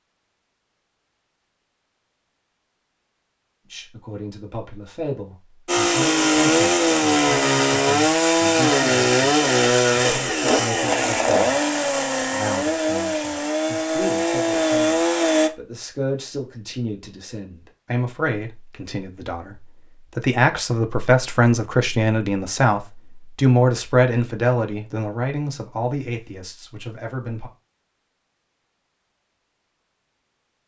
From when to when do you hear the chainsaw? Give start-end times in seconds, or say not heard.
5.7-15.5.